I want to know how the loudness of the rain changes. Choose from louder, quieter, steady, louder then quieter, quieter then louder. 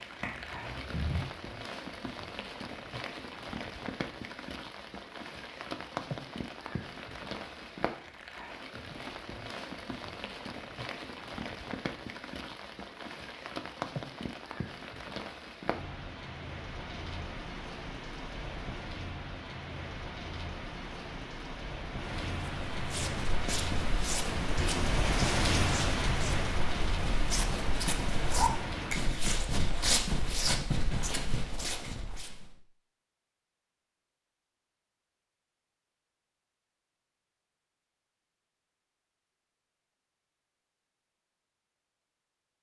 louder.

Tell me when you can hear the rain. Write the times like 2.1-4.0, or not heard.
0.0-28.9.